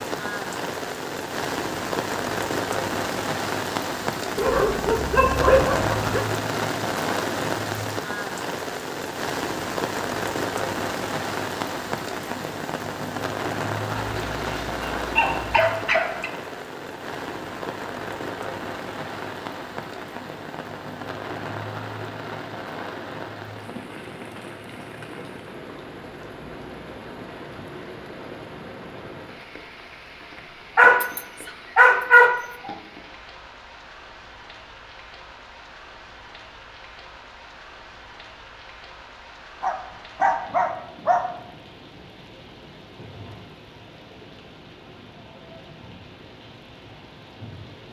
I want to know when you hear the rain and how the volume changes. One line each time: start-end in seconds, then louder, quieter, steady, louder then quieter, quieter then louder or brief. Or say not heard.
0.0-47.8 quieter.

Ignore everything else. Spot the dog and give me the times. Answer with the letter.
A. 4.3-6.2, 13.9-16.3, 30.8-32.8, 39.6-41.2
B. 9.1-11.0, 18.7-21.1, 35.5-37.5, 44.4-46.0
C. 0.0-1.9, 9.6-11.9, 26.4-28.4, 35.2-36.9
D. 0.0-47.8
A.